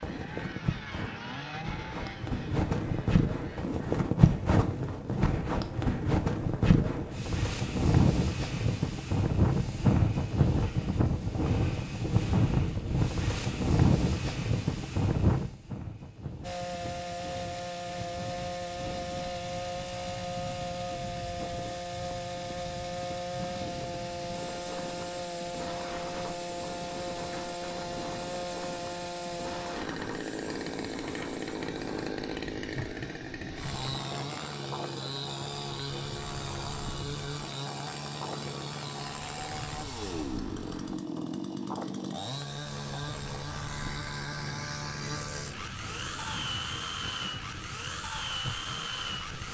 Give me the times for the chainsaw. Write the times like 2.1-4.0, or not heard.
0.0-3.6, 16.4-49.4.